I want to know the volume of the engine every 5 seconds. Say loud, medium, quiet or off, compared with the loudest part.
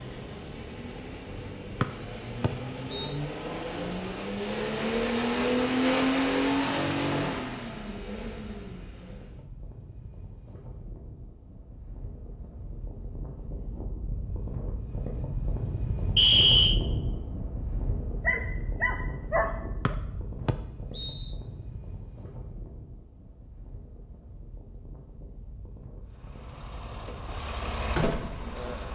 medium, loud, off, off, off, medium.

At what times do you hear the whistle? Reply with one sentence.
The whistle can be heard from 1.8 to 3.1 s, from 16.1 to 16.8 s and from 19.9 to 21.2 s.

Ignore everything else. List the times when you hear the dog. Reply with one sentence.
The dog can be heard from 18.2 to 19.9 s.